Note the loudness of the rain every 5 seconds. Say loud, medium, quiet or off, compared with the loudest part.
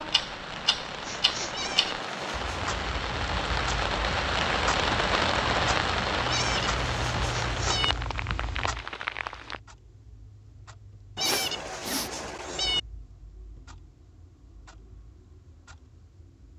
loud, loud, off, off.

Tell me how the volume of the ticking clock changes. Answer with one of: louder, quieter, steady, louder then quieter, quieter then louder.
quieter.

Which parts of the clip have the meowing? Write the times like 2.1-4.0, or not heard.
1.5-2.8, 6.2-8.0, 11.2-12.8.